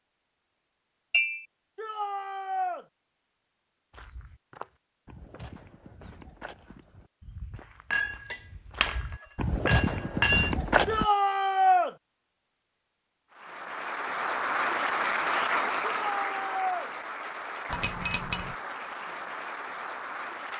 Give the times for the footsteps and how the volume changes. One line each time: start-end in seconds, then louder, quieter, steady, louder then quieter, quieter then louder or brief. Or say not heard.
3.9-11.1 quieter then louder.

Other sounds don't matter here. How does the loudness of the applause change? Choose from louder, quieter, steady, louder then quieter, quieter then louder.
quieter.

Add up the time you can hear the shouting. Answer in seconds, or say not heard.
3 s.